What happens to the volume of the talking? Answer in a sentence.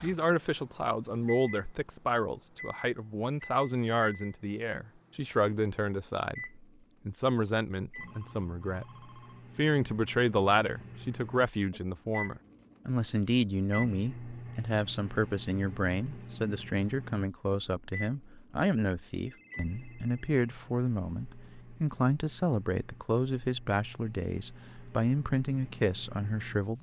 The volume of the talking stays about the same.